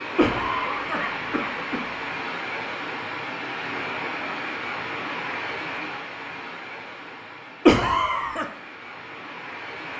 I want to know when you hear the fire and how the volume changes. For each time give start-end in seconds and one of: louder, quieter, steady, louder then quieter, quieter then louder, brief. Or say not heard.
not heard.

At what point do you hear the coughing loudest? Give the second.
8 s.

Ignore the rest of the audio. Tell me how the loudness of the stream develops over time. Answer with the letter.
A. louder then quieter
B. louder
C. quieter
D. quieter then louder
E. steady
C.